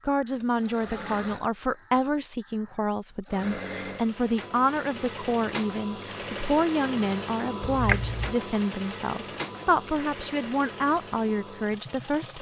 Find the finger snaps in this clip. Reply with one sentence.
The finger snaps can be heard from 7.6 to 8.3 s.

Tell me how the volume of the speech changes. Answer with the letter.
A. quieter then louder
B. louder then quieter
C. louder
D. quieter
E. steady
E.